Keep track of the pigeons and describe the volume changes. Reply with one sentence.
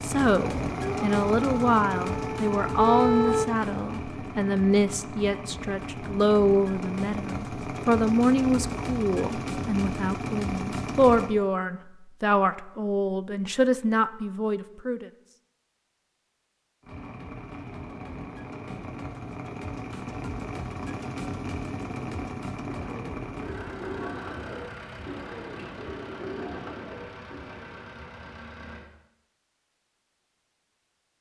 The loudness of the pigeons stays about the same.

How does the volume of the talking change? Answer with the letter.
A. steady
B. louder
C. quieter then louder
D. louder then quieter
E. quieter
A.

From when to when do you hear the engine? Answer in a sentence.
You can hear the engine from 0.0 to 11.3 s and from 16.8 to 28.9 s.